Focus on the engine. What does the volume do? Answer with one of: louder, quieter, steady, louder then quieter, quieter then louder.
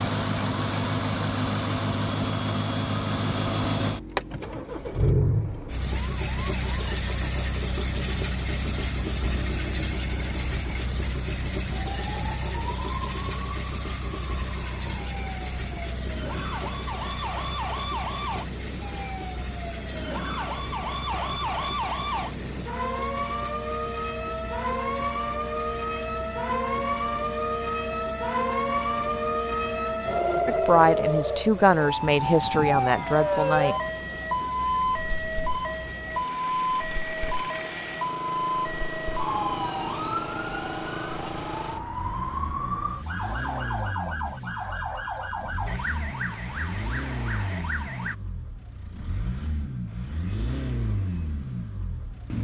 quieter then louder.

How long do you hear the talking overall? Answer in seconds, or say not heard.
3 s.